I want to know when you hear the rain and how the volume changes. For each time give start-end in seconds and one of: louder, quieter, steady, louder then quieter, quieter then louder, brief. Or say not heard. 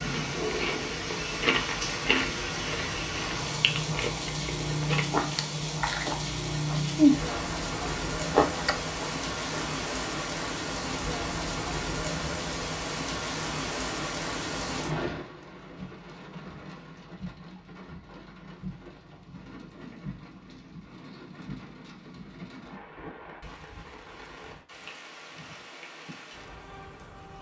0.0-27.3 quieter.